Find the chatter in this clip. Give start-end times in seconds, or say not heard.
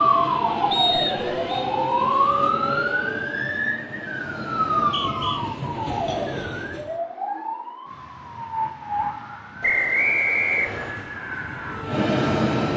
not heard.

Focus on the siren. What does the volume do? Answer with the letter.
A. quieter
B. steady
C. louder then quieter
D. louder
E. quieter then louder
A.